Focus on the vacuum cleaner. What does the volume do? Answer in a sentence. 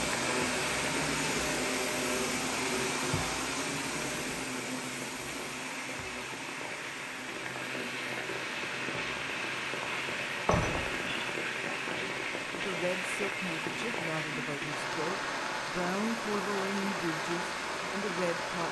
The volume of the vacuum cleaner goes down.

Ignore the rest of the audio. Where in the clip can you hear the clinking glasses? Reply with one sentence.
You can hear the clinking glasses from 10.4 to 11.2 s.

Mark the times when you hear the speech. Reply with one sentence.
You can hear the speech from 11.9 to 18.6 s.